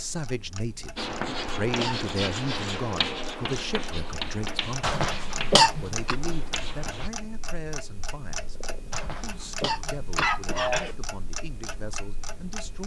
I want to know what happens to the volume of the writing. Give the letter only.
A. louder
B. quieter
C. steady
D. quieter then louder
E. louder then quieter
B.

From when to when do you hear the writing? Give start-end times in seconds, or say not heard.
0.9-7.1.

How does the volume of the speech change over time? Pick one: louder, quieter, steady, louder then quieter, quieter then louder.
quieter.